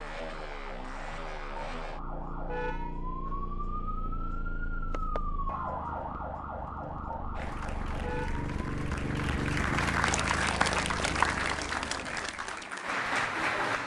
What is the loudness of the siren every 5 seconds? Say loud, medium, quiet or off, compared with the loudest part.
loud, loud, off.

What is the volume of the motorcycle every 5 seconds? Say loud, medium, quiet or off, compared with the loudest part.
medium, loud, loud.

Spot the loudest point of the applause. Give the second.
11 s.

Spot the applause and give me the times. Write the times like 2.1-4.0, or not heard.
7.3-13.8.